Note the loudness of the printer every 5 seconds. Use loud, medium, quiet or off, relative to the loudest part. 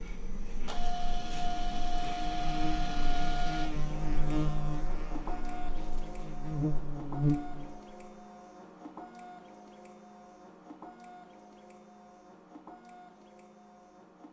loud, medium, quiet.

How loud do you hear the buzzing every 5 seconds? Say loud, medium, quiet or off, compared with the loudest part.
loud, loud, off.